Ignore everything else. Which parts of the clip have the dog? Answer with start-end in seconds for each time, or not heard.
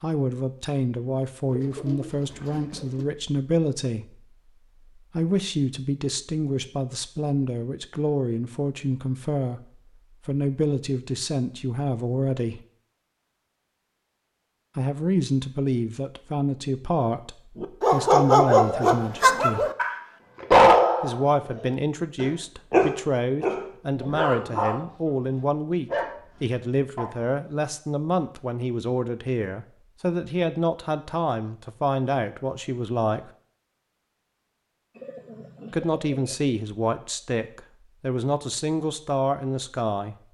17.6-27.1.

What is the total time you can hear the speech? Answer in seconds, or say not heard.
33 s.